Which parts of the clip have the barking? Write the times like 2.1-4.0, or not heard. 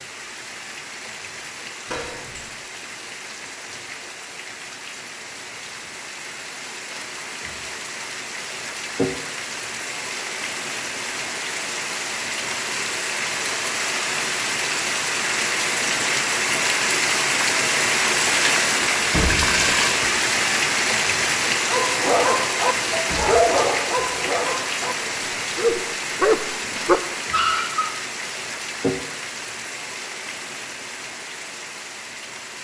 21.6-27.9.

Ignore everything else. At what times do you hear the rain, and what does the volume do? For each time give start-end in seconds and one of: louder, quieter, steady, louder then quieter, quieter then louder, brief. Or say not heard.
0.0-32.5 louder then quieter.